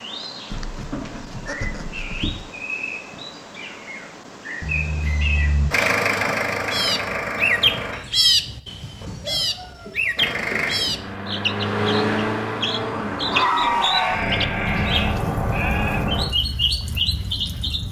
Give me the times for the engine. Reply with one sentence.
You can hear the engine from 5.7 to 8.0 s and from 10.2 to 16.2 s.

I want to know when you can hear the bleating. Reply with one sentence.
The bleating can be heard from 0.5 to 2.5 s, from 4.6 to 5.7 s, from 9.0 to 11.0 s and from 13.6 to 16.1 s.